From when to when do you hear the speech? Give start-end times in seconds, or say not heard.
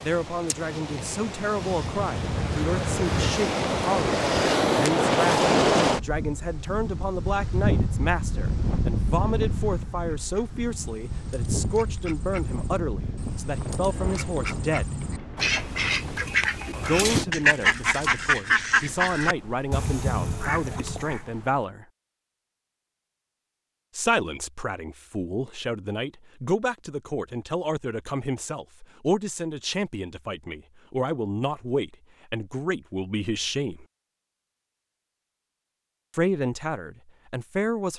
0.0-14.9, 16.9-21.9, 23.9-33.9, 36.1-37.9.